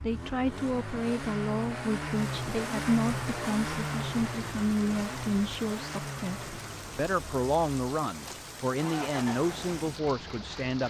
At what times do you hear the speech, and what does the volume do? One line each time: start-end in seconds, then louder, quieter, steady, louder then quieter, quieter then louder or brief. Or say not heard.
0.0-10.8 steady.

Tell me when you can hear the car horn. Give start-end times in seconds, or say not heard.
not heard.